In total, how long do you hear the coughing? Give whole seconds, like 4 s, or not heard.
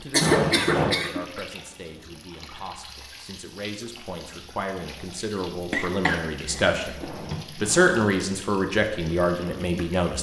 3 s.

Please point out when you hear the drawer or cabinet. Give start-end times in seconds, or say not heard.
0.2-1.0, 6.5-8.0.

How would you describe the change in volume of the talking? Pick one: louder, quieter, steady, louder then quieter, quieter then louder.
louder.